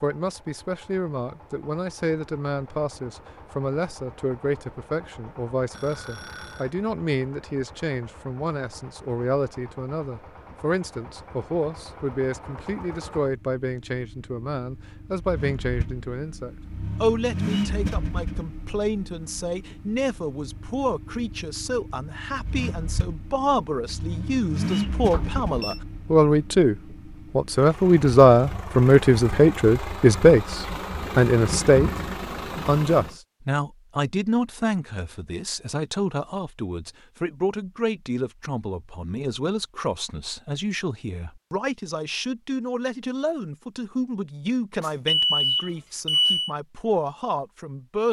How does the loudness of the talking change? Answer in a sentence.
The volume of the talking goes up, then down.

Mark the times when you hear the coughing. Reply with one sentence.
You can't hear the coughing here.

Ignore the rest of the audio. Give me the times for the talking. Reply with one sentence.
You can hear the talking from 0.0 to 31.9 s and from 32.6 to 48.0 s.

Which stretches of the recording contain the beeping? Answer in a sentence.
You can hear the beeping from 5.7 to 6.7 s, from 25.1 to 25.8 s and from 44.8 to 46.5 s.